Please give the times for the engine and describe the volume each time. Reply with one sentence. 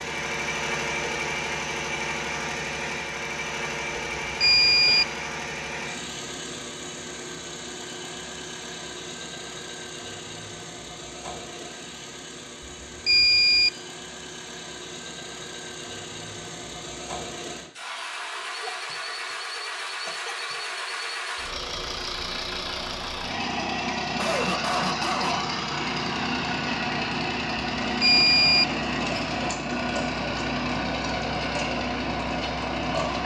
The engine can be heard from 0.0 to 33.2 s, getting quieter then louder.